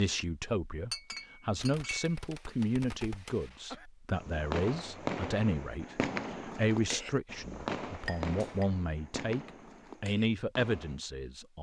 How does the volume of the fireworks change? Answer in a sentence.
The volume of the fireworks goes up, then down.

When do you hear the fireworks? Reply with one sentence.
You can hear the fireworks from 1.6 to 11.0 s.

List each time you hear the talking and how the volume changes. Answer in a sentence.
The talking can be heard from 0.0 to 11.5 s, at a steady volume.